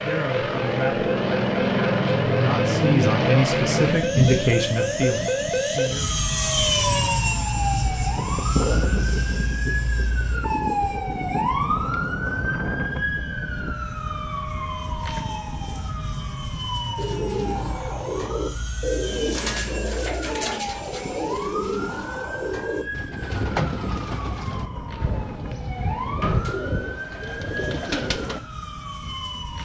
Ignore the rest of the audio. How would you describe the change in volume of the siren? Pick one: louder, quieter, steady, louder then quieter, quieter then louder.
quieter.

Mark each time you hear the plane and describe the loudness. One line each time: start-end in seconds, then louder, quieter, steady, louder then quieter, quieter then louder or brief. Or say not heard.
0.0-29.6 quieter.